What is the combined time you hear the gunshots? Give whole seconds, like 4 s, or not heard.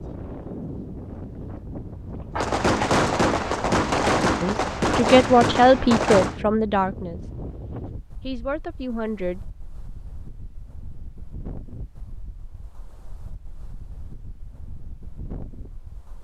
4 s.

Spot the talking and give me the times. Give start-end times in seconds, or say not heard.
4.4-7.2, 8.2-9.4.